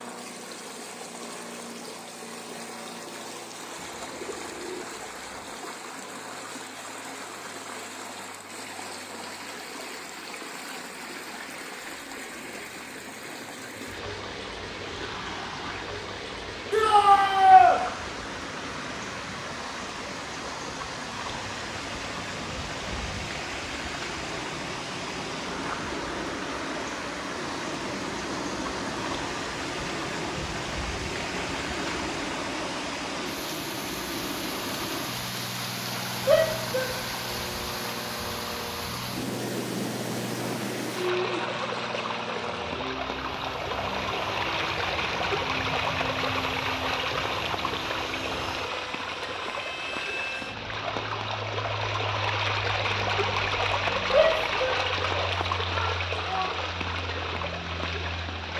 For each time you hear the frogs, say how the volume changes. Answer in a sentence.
The frogs can't be heard in this clip.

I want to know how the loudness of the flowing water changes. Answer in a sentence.
The loudness of the flowing water goes up.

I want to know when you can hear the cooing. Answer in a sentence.
You can hear the cooing from 3.8 to 5.5 s.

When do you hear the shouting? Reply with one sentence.
You can hear the shouting from 16.7 to 17.8 s, from 36.2 to 36.9 s and from 54.1 to 56.5 s.